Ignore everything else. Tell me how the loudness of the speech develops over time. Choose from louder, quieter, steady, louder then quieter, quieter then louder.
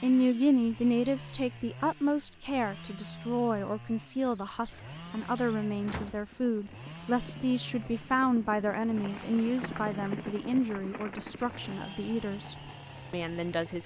quieter.